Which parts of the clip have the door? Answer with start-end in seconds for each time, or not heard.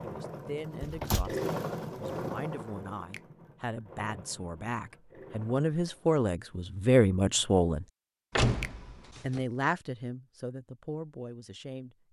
0.8-1.4, 8.3-9.4.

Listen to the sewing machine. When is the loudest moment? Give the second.
2 s.